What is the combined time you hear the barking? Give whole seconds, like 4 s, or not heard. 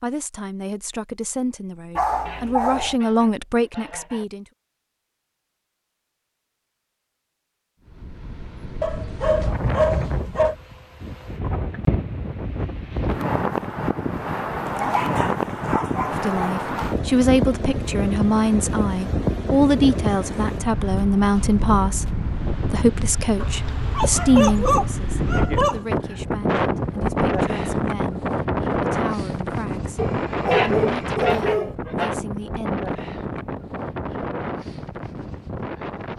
9 s.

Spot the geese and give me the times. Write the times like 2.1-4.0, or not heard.
2.2-4.2, 30.5-32.1.